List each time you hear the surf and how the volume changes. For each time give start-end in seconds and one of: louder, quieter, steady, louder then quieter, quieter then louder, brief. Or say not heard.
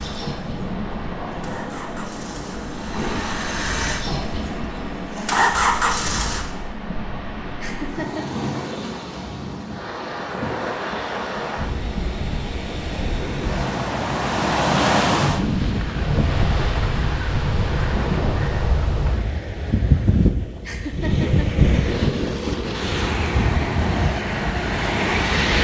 0.0-25.5 louder.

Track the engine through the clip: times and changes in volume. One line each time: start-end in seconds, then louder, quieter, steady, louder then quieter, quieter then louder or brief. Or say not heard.
0.0-6.5 louder.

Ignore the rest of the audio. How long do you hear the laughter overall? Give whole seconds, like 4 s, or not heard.
2 s.